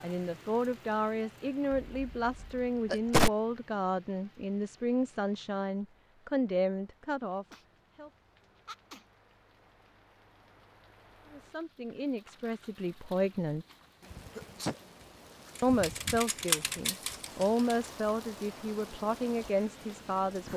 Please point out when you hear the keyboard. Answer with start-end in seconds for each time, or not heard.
15.6-17.6.